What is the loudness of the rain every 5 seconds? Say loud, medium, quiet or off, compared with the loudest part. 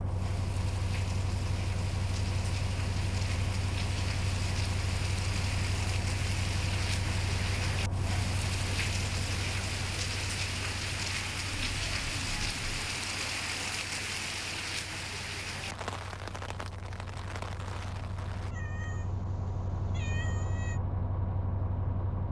medium, loud, loud, medium, off.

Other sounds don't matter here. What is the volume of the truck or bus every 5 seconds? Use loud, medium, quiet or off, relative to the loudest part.
loud, loud, medium, medium, loud.